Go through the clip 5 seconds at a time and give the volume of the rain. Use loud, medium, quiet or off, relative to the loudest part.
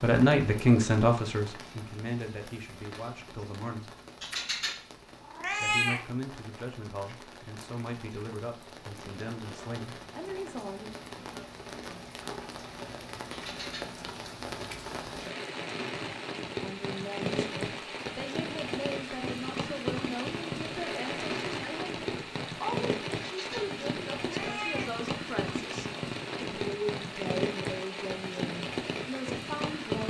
quiet, quiet, medium, loud, loud, loud.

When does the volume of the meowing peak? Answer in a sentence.
The volume of the meowing peaks at 6 seconds.